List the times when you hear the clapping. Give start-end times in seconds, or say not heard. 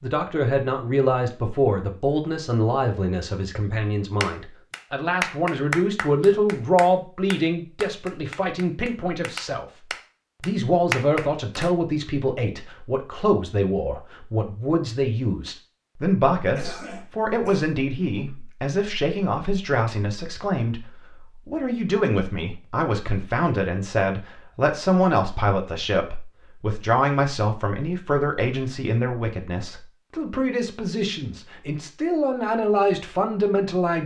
4.2-11.7.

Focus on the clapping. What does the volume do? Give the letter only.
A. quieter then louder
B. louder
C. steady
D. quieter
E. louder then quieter
A.